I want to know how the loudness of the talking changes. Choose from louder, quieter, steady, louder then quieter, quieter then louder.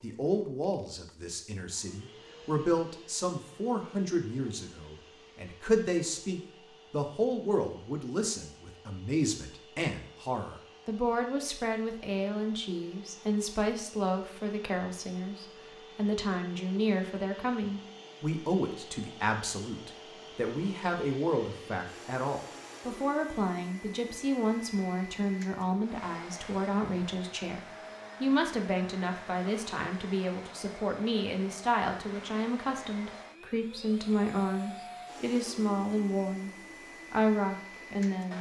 steady.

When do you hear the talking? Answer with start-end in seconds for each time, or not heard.
0.0-38.3.